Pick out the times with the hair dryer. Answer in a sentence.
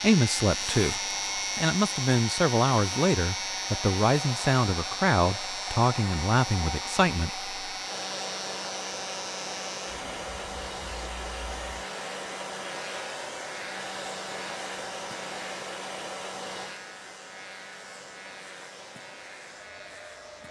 The hair dryer can be heard from 0.0 to 20.4 s.